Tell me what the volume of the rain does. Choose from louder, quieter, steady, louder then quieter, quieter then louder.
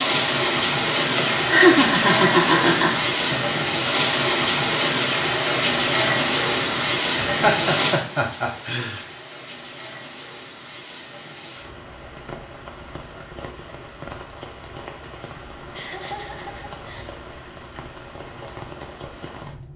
quieter.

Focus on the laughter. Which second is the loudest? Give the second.
2 s.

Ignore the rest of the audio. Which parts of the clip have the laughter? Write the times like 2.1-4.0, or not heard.
1.1-3.4, 7.2-9.1, 15.7-17.2.